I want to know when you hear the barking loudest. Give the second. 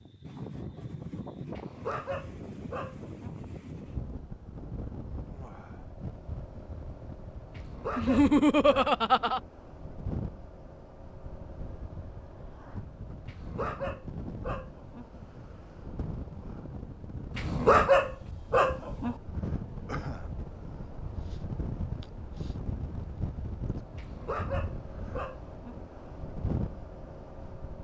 18 s.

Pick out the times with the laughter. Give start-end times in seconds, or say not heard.
8.0-9.4.